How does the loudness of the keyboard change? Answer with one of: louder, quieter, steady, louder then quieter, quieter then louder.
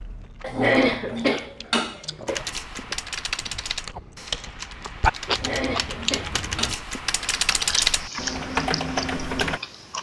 quieter then louder.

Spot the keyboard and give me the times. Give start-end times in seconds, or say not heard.
2.2-9.6.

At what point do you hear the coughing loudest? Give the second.
1 s.